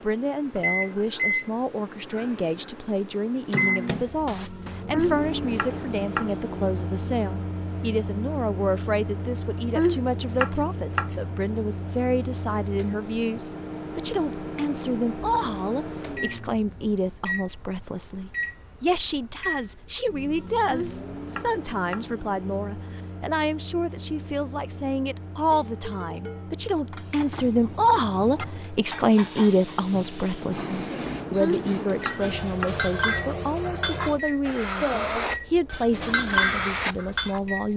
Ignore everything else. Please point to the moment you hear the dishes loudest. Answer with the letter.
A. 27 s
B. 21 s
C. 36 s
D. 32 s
C.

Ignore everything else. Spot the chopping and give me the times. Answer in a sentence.
The chopping can be heard from 4.9 to 6.3 s, from 9.8 to 11.2 s, from 20.7 to 22.1 s and from 31.4 to 32.8 s.